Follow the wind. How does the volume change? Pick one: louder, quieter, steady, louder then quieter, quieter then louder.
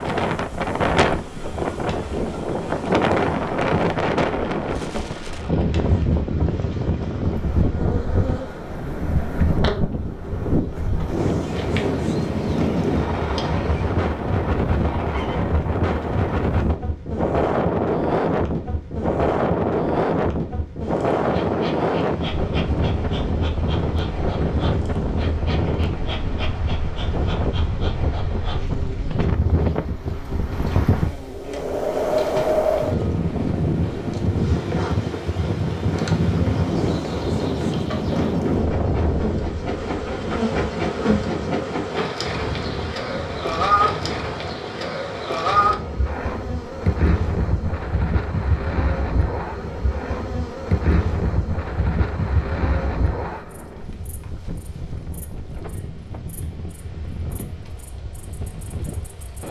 quieter.